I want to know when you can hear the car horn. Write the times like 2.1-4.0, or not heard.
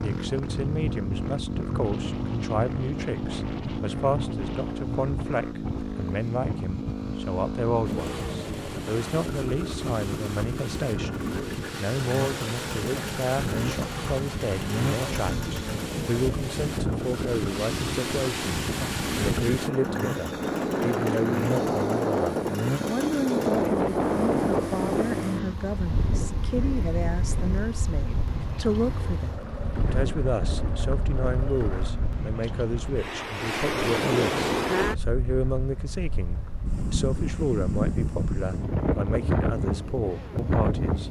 not heard.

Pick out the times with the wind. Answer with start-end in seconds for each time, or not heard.
0.0-41.0.